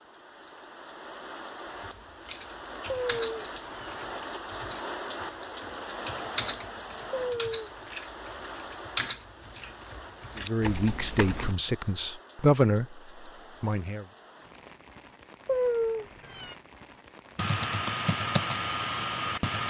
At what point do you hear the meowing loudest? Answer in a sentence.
The loudest moment of the meowing is at 16 seconds.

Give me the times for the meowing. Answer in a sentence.
You can hear the meowing from 2.9 to 3.9 s, from 7.1 to 7.8 s and from 15.4 to 16.6 s.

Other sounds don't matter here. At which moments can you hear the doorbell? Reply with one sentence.
The doorbell can't be heard in this clip.